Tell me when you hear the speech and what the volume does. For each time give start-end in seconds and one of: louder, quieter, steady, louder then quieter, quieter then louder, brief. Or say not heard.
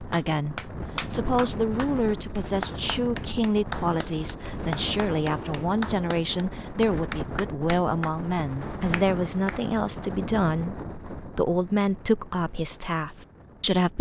0.0-13.9 steady.